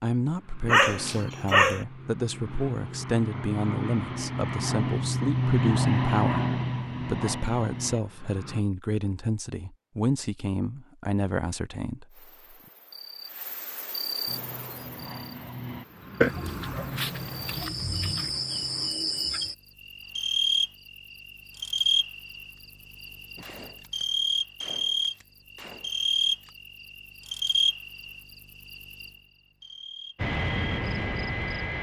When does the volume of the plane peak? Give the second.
6 s.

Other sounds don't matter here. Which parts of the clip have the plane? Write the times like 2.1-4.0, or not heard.
0.2-8.6, 14.2-18.9, 30.1-31.7.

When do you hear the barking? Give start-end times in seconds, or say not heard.
0.7-1.9, 16.2-18.3.